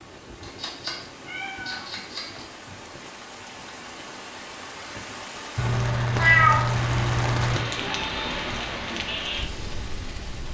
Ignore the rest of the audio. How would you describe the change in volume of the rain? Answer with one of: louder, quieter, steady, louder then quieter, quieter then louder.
louder.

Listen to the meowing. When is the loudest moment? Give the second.
6 s.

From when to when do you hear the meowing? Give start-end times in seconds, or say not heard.
0.4-2.5, 5.5-7.6.